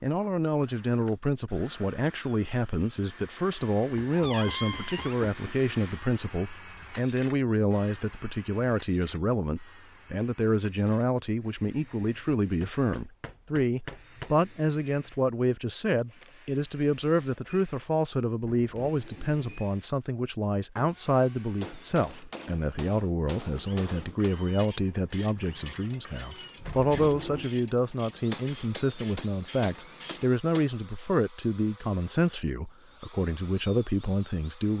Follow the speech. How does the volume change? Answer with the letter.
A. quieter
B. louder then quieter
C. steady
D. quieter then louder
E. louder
C.